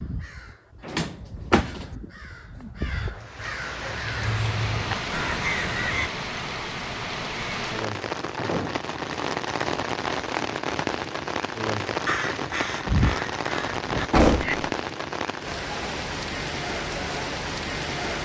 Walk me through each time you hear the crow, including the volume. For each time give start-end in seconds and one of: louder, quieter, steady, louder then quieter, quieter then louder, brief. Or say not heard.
0.0-6.1 louder
12.1-14.6 brief.